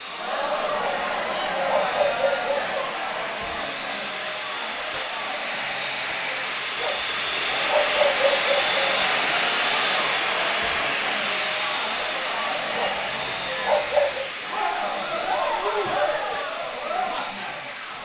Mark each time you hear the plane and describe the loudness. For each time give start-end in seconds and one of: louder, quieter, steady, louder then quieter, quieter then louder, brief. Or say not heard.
0.0-18.0 louder then quieter.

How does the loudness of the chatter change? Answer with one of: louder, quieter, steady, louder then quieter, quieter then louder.
quieter then louder.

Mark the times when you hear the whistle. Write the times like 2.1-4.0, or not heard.
not heard.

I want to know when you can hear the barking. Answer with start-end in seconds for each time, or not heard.
0.8-2.8, 6.8-8.8, 12.8-14.2.